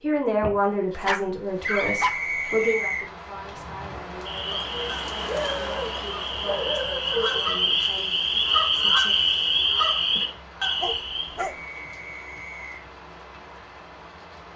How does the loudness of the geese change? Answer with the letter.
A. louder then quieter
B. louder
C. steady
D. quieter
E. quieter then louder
B.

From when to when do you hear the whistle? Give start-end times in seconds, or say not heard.
1.6-3.1, 11.4-12.8.